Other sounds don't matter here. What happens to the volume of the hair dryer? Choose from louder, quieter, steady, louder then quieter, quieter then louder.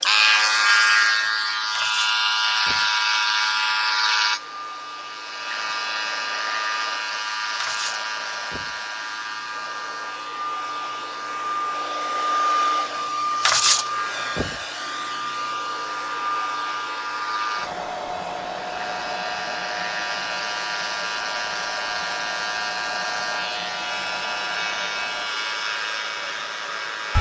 louder then quieter.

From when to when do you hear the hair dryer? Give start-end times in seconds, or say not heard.
0.0-27.1.